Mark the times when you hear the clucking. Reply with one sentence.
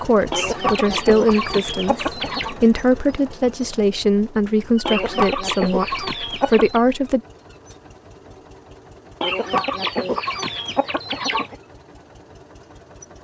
You can hear the clucking from 0.3 to 2.5 s, from 4.8 to 6.8 s and from 9.2 to 11.6 s.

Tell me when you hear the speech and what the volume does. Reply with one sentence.
The speech can be heard from 0.0 to 7.2 s, at a steady volume.